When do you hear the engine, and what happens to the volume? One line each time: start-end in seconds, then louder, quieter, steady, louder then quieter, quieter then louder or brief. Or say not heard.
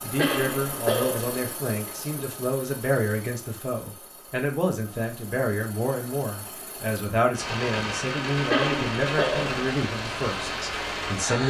0.0-11.4 quieter then louder.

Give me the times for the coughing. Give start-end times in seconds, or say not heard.
0.1-1.4, 8.5-9.7.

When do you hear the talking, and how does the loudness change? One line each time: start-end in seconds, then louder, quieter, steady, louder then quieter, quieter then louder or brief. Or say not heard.
0.0-11.4 steady.